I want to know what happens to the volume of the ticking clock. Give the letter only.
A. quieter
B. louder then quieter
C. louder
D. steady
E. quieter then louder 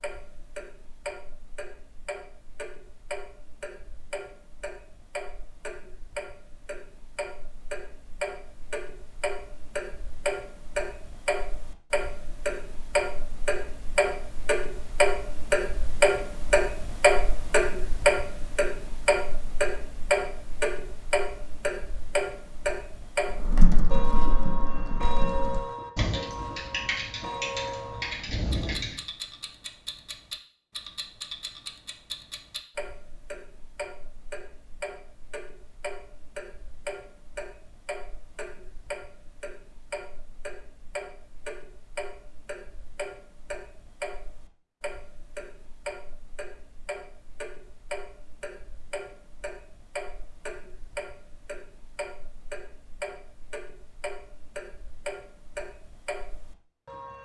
B.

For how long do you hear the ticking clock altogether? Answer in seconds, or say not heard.
57 s.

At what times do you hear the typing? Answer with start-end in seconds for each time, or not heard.
23.3-29.0.